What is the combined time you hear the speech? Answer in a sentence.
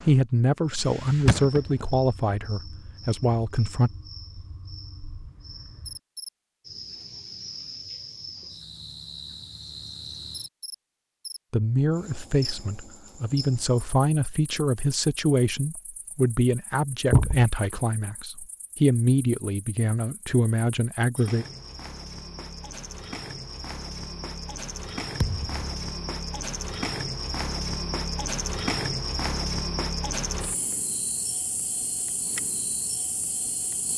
You can hear the speech for 14 seconds altogether.